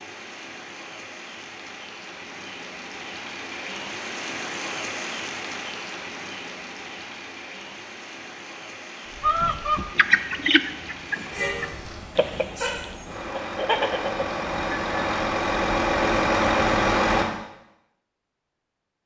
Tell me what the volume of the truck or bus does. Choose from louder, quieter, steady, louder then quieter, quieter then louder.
louder.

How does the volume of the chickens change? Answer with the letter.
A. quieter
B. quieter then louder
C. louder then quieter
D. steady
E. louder
B.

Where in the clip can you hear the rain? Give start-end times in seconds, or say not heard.
0.0-12.2.